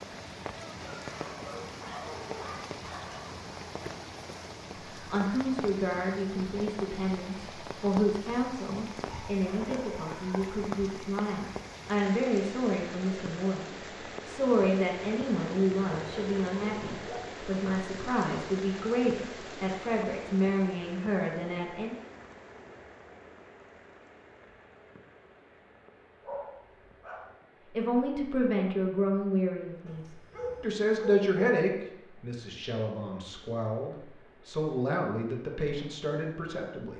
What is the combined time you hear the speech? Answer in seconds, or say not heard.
26 s.